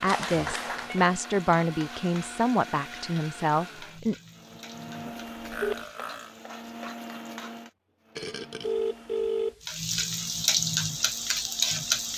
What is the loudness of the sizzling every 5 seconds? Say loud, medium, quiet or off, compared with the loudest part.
quiet, quiet, loud.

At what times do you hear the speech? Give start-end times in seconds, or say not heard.
0.0-4.2.